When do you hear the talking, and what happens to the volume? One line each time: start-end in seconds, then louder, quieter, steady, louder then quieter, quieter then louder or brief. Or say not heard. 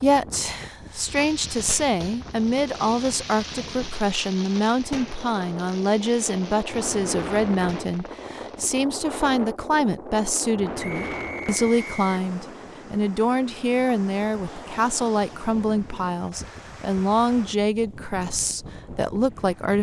0.0-19.7 steady.